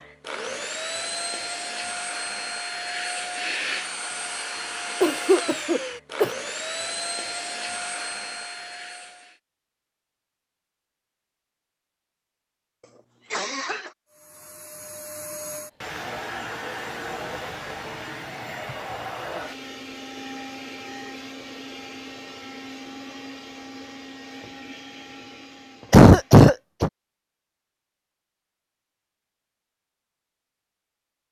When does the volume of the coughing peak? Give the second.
26 s.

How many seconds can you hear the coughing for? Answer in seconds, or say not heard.
3 s.